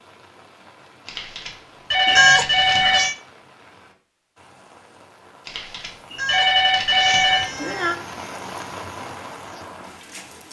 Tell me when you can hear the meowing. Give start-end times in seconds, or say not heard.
2.0-3.1, 6.1-8.0.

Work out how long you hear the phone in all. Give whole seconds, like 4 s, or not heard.
4 s.